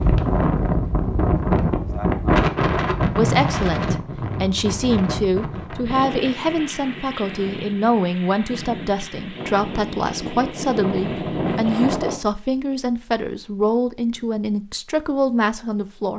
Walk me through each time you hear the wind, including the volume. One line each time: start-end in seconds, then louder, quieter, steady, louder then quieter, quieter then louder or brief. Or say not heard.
0.0-12.2 quieter then louder.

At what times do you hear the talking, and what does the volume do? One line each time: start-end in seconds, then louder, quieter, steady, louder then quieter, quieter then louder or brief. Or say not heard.
3.1-16.1 steady.